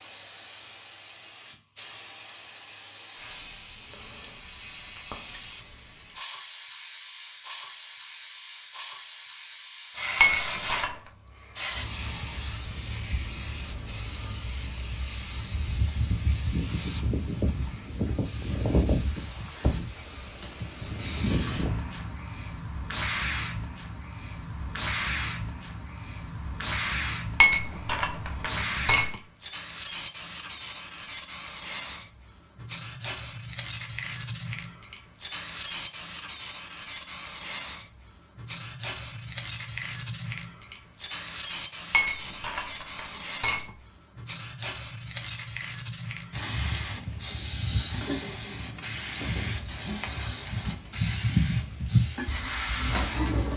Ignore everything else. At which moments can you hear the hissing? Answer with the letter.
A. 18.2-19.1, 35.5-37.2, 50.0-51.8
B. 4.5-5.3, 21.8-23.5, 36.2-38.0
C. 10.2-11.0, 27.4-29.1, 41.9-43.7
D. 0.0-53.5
D.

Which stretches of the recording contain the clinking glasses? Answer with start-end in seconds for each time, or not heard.
10.2-11.0, 27.4-29.1, 41.9-43.7.